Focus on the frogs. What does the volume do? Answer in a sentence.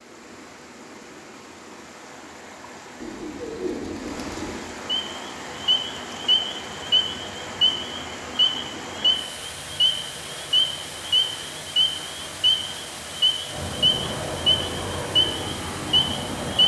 The loudness of the frogs stays about the same.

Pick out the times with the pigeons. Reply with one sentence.
The pigeons can be heard from 3.0 to 4.7 s.